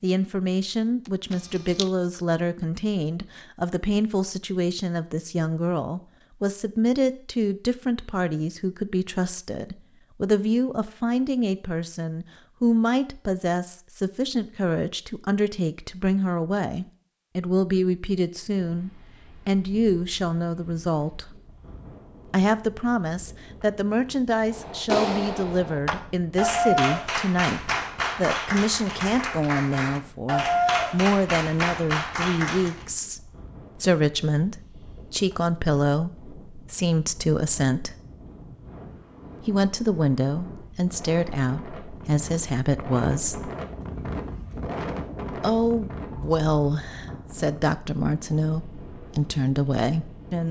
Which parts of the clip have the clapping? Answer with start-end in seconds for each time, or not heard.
24.4-32.9.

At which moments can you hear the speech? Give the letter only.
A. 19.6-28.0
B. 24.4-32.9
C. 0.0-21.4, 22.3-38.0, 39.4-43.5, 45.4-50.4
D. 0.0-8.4
C.